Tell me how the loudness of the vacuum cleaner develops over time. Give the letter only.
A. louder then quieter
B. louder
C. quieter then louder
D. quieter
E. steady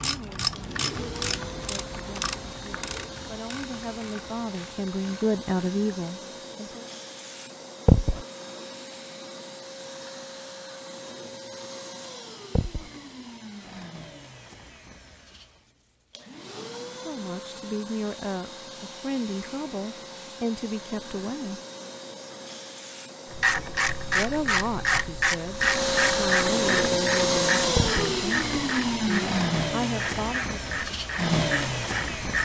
B.